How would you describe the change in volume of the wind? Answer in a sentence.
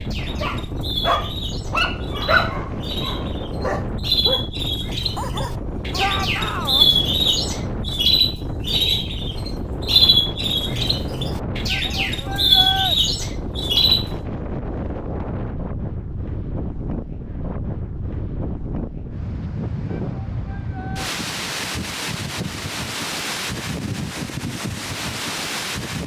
The volume of the wind stays about the same.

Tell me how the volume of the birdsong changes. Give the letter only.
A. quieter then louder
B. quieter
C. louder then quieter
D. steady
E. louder
E.